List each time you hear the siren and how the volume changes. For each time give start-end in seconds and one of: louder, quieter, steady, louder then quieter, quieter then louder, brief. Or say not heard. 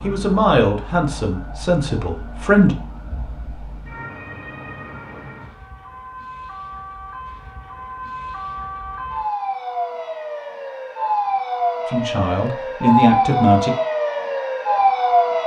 0.0-15.4 louder.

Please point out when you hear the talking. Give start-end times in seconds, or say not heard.
0.0-2.8, 11.9-13.7.